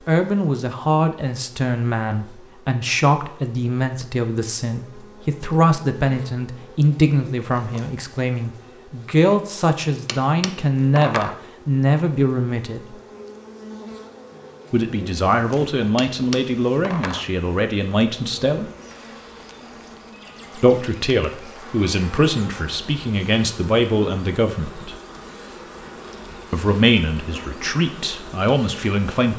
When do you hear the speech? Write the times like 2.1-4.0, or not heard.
0.1-12.9, 14.7-18.7, 20.6-24.9, 26.5-29.3.